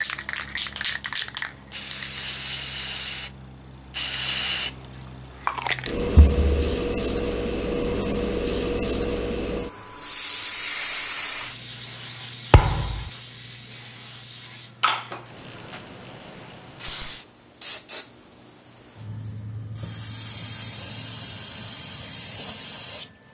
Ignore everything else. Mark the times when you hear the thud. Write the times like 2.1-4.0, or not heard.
6.2-6.8, 12.5-13.1.